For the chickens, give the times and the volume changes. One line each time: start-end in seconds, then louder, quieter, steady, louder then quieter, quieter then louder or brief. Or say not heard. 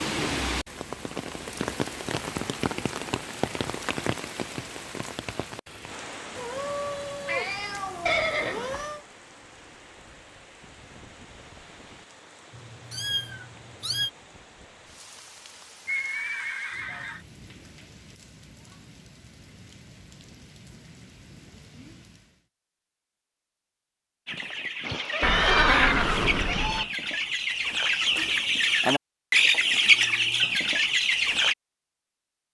24.2-31.6 louder.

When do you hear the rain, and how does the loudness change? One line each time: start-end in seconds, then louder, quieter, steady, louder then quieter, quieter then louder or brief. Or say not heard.
0.0-22.4 quieter.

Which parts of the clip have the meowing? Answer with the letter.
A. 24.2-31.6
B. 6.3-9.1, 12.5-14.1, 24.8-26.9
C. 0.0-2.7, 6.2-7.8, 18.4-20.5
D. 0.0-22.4
B.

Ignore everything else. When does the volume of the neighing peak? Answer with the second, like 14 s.
26 s.